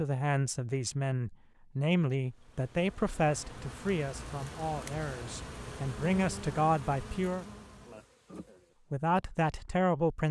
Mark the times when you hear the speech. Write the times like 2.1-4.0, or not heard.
0.0-7.5, 8.9-10.2.